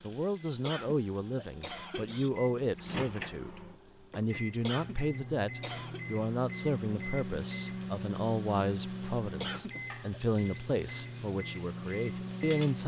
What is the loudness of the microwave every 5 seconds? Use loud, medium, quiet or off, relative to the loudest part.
medium, loud, loud.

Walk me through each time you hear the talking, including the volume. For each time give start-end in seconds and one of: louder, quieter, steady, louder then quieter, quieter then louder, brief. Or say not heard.
0.0-12.8 steady.